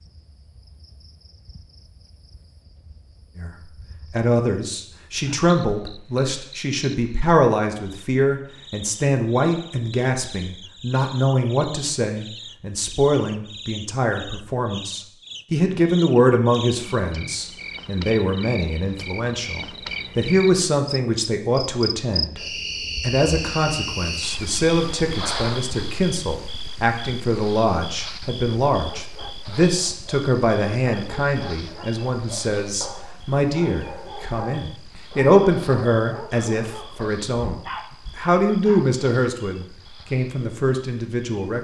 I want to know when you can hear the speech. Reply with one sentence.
The speech can be heard from 3.4 to 22.4 s and from 23.0 to 41.5 s.